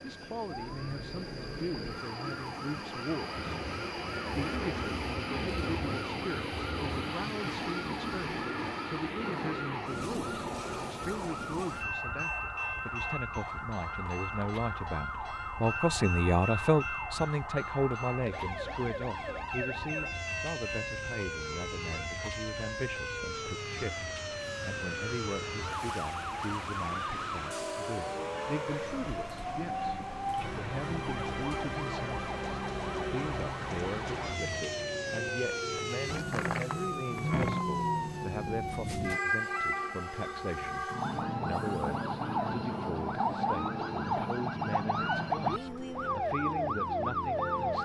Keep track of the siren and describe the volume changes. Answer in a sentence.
The loudness of the siren goes up.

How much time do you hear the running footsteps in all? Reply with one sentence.
The running footsteps can't be heard in this clip.